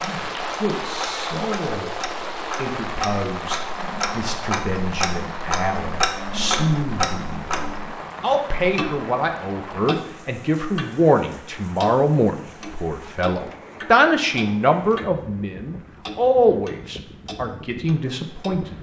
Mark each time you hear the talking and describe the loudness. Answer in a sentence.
You can hear the talking briefly from 0.0 to 1.9 s; and from 2.5 to 18.7 s, getting louder.